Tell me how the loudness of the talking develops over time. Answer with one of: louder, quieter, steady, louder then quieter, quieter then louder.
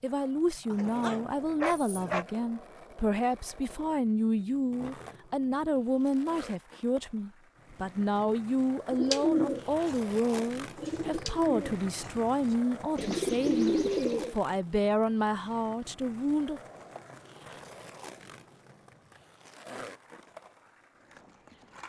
steady.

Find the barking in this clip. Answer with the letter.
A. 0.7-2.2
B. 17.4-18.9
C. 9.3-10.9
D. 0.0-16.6
A.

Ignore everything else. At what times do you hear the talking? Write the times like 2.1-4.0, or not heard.
0.0-16.6.